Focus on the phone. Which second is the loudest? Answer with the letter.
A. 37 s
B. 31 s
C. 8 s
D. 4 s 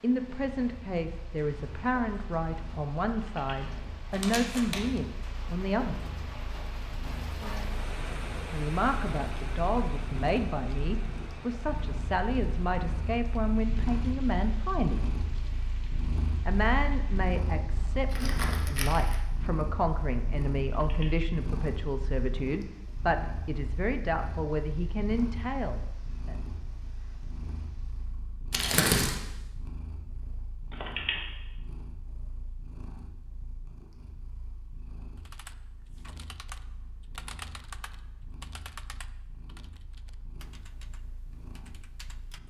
B.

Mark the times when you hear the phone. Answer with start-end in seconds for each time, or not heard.
3.1-3.6, 20.6-21.1, 30.7-31.2.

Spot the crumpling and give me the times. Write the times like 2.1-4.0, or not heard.
4.1-5.0, 18.1-19.2, 28.5-29.1.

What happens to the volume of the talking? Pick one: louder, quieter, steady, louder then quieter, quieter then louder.
steady.